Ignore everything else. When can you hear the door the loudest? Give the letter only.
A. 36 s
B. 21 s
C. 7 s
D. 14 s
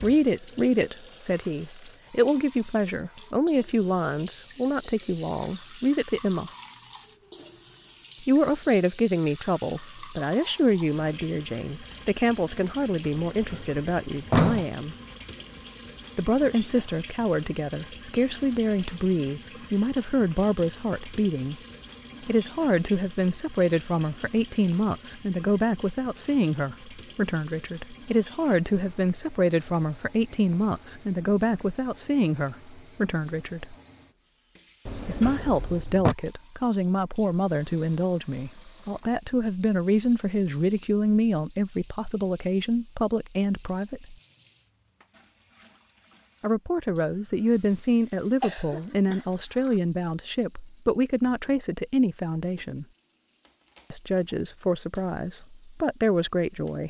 D.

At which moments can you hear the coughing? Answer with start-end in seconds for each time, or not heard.
48.4-49.8.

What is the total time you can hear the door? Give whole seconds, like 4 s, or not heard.
3 s.